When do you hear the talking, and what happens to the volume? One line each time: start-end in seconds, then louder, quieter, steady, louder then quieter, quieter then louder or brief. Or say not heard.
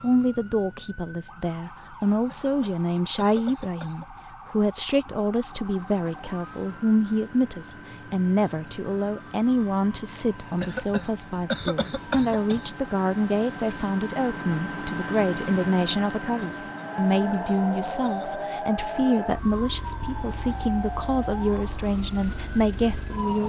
0.0-23.4 steady.